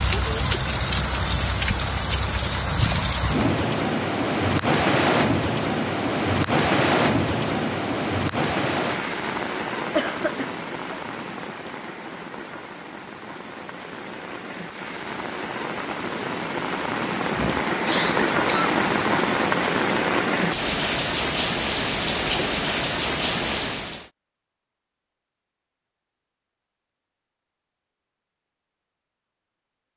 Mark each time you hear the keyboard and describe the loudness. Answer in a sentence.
You can't hear the keyboard here.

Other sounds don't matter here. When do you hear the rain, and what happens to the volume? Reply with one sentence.
You can hear the rain from 0.0 to 24.1 s, getting quieter then louder.